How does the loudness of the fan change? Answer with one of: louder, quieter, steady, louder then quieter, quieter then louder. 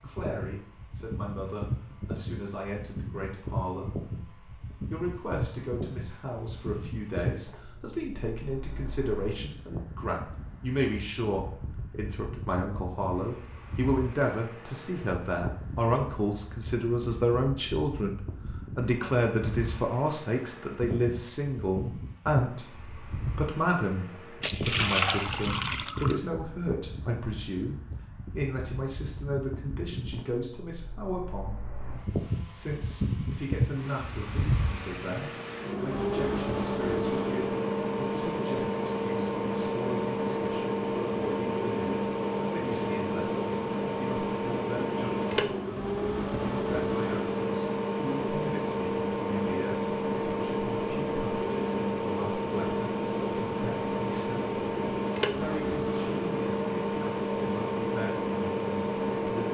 louder.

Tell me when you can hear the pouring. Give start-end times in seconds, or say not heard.
24.4-26.2.